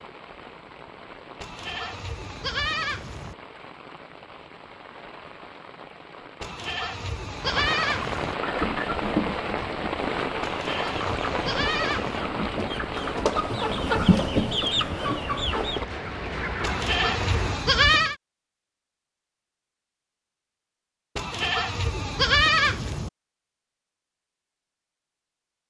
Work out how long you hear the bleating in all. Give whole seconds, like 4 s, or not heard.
9 s.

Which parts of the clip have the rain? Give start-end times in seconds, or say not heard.
0.0-17.8.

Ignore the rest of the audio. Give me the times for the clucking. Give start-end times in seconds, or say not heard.
8.3-16.9.